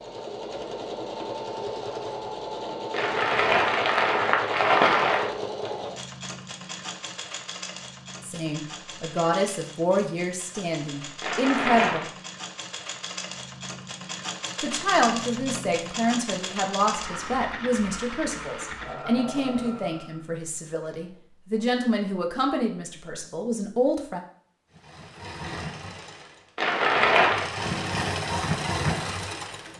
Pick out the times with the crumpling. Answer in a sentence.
You can hear the crumpling from 2.9 to 5.3 s, from 11.2 to 12.1 s and from 26.6 to 27.5 s.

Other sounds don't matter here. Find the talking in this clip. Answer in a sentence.
The talking can be heard from 8.2 to 12.1 s and from 14.6 to 24.2 s.